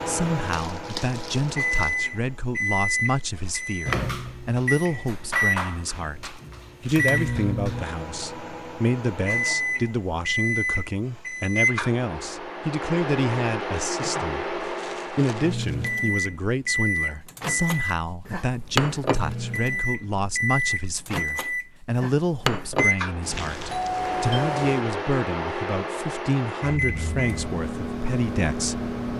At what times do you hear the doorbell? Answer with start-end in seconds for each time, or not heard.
23.2-24.9.